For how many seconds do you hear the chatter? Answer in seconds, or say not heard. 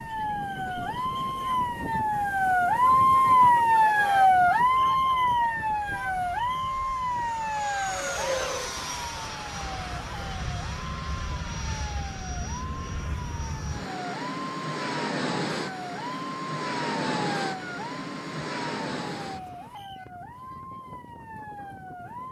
not heard.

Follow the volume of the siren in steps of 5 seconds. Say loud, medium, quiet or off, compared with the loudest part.
loud, medium, quiet, quiet, quiet.